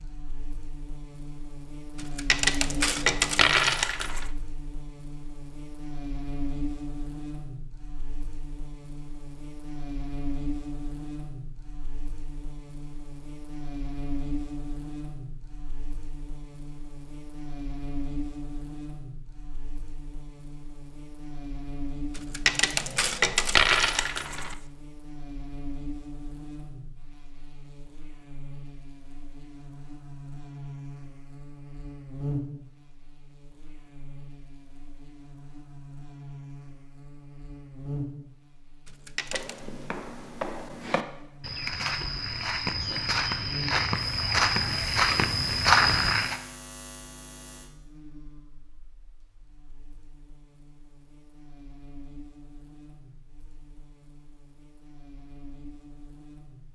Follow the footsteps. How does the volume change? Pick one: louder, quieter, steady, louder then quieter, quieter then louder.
louder.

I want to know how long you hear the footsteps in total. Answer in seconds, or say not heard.
7 s.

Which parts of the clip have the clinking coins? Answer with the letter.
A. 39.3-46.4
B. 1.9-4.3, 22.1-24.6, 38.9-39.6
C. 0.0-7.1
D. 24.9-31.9
B.